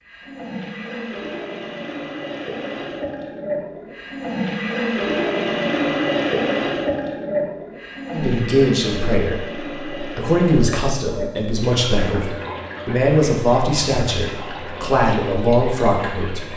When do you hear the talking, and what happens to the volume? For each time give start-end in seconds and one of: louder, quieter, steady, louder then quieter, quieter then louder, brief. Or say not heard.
8.1-16.5 steady.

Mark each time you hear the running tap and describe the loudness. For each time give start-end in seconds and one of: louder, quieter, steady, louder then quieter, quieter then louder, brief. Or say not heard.
0.0-16.5 louder then quieter.